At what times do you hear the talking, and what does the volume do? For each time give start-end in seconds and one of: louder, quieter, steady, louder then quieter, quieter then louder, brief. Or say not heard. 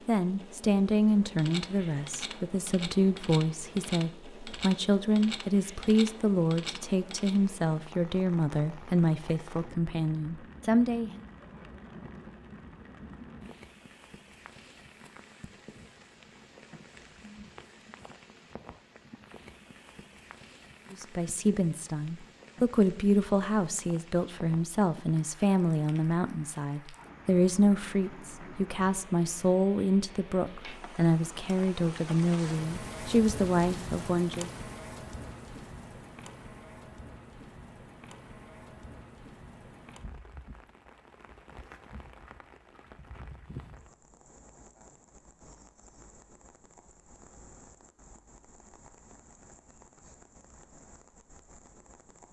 0.1-11.2 steady
20.9-34.5 steady.